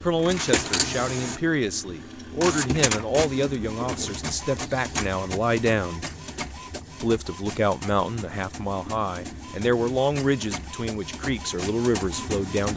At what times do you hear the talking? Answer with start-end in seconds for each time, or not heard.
0.0-6.0, 7.0-12.7.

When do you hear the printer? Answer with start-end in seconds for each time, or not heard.
0.0-12.7.